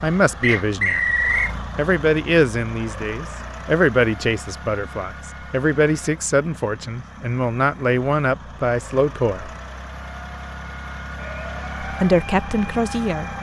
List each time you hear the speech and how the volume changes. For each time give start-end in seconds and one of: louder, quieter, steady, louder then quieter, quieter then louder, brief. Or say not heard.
0.0-1.1 brief
1.8-9.5 steady
11.8-13.3 brief.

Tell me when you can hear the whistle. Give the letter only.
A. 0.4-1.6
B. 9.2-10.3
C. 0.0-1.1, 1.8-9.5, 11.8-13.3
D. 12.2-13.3
A.